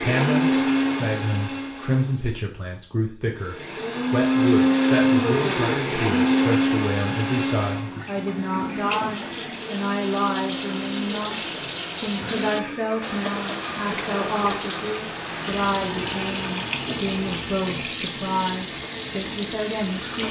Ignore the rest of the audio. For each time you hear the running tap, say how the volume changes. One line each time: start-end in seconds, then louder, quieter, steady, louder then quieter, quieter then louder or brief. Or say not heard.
0.1-20.2 louder.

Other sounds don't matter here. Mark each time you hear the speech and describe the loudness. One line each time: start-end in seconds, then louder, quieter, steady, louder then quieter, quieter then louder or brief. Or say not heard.
0.0-20.2 steady.